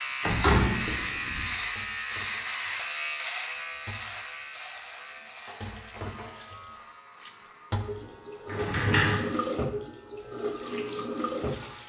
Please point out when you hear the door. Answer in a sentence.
You can hear the door from 0.2 to 1.4 s and from 8.4 to 9.2 s.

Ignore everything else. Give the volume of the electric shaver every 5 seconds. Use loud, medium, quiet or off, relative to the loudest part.
loud, quiet, quiet.